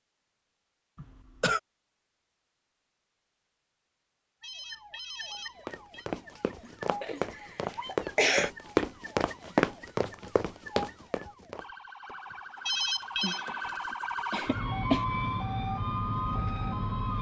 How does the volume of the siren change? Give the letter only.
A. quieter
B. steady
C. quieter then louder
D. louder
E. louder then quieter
D.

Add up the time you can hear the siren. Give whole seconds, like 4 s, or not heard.
13 s.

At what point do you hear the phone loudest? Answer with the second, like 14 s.
13 s.